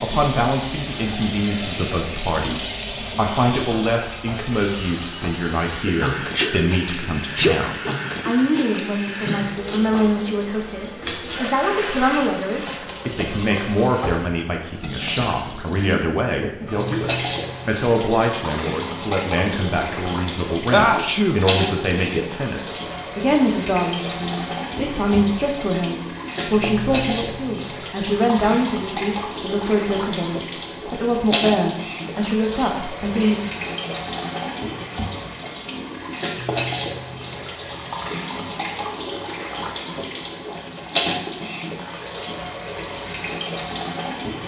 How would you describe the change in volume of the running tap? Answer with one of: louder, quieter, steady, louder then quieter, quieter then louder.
steady.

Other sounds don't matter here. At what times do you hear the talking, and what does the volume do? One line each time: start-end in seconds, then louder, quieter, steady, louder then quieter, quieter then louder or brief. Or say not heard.
0.0-33.4 steady.